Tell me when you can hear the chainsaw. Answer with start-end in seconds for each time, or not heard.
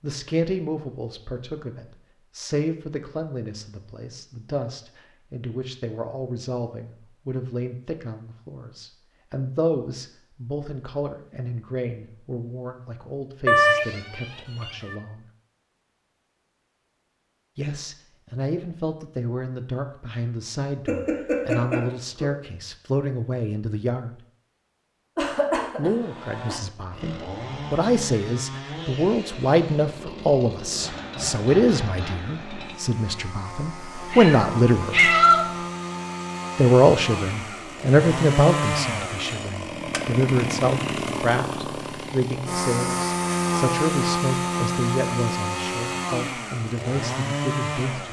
25.9-48.0.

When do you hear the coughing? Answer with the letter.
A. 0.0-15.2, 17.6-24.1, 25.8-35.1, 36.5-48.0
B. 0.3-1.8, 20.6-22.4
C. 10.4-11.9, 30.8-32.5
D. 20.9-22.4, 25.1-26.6
D.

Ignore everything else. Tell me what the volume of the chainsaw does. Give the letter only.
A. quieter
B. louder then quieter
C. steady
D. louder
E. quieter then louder
D.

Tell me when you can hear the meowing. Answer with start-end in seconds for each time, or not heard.
13.4-14.9, 33.8-35.5.